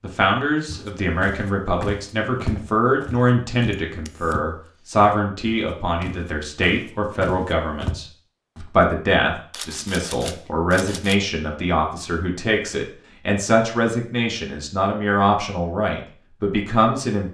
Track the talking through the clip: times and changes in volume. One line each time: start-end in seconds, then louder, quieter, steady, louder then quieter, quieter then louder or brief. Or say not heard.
0.0-17.2 steady.